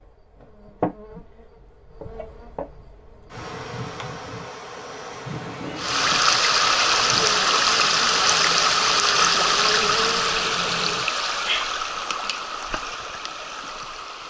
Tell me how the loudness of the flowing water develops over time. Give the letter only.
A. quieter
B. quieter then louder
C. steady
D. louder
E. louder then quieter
A.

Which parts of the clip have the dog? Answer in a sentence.
The dog can't be heard in this clip.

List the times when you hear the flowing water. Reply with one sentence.
You can hear the flowing water from 5.8 to 14.2 s.